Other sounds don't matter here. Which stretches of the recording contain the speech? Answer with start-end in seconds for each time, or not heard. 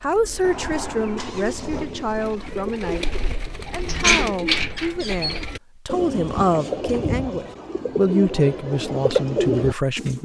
0.0-10.2.